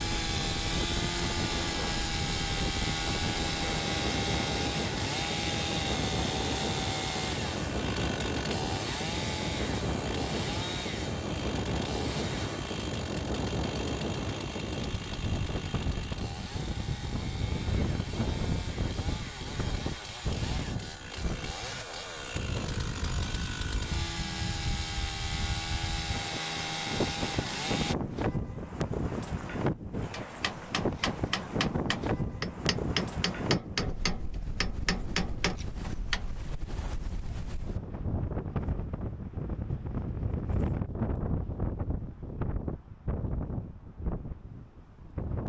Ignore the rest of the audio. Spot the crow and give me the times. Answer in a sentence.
You can't hear the crow here.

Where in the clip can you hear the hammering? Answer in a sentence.
You can hear the hammering from 30.1 to 36.3 s.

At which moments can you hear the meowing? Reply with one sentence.
The meowing can't be heard in this clip.